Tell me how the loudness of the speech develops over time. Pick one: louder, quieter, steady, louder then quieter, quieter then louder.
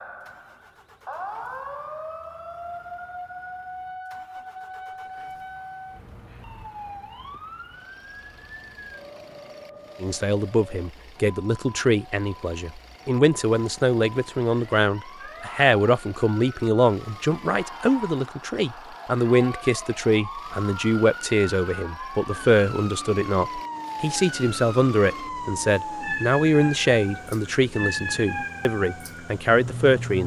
steady.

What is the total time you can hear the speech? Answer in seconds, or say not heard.
20 s.